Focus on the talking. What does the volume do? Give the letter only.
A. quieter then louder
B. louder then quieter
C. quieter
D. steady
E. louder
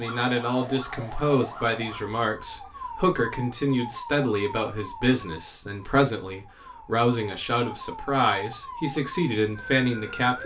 D.